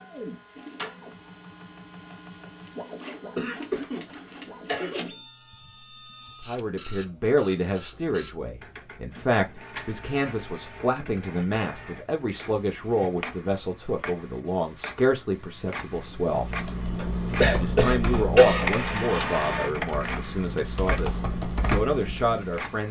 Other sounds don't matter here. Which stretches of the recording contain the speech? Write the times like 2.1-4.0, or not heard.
6.4-16.5, 17.5-22.8.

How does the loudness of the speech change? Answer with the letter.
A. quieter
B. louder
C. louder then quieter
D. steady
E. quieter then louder
D.